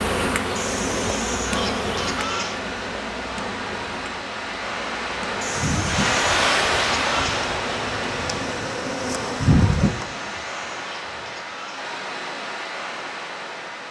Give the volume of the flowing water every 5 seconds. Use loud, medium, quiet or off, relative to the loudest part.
medium, loud, medium.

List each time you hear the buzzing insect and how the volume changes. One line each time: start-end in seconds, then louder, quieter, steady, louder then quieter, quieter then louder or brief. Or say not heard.
0.0-10.1 quieter then louder.